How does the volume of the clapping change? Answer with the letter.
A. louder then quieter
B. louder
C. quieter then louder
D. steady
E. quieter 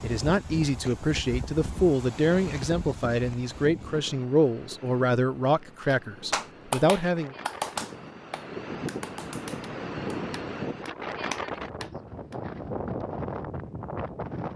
C.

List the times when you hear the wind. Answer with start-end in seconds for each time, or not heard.
0.0-14.5.